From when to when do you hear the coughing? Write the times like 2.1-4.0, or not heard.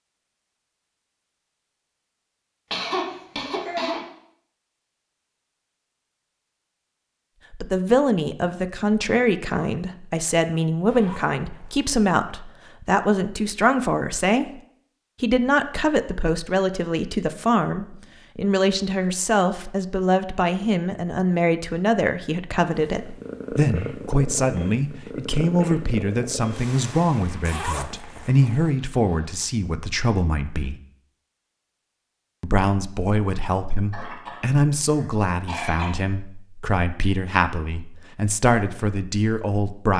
2.7-4.0, 33.9-35.9.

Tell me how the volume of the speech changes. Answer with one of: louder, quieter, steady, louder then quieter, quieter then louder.
steady.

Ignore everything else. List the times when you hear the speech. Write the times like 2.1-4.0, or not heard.
7.5-14.6, 15.2-30.8, 32.4-39.9.